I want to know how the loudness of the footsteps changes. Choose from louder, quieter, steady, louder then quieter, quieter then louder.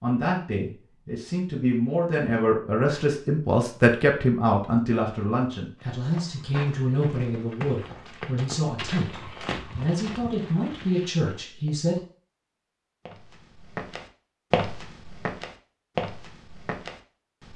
louder.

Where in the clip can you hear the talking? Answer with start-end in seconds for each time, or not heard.
0.0-12.0.